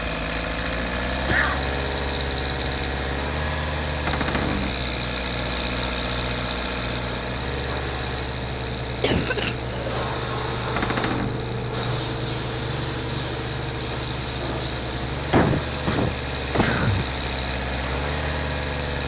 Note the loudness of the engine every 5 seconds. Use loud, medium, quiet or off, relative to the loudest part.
loud, loud, medium, loud.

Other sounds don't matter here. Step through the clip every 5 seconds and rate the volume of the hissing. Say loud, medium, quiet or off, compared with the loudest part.
medium, medium, loud, medium.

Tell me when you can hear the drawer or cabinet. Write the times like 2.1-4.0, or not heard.
4.0-4.8, 10.8-11.4.